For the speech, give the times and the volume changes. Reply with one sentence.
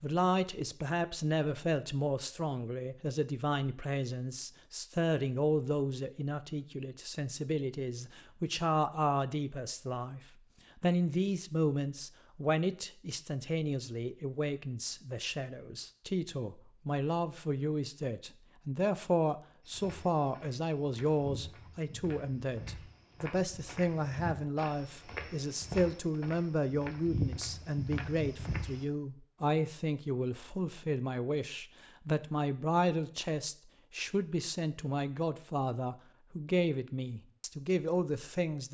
You can hear the speech from 0.0 to 38.6 s, at a steady volume.